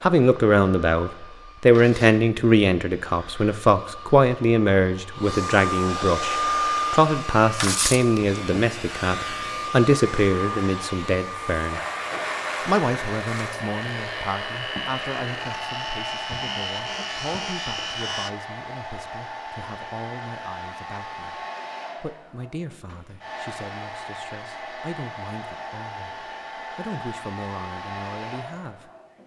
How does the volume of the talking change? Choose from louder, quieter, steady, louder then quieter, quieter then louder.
quieter.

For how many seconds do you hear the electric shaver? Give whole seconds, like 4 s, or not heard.
12 s.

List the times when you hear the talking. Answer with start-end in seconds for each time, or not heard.
0.0-11.8, 12.7-28.9.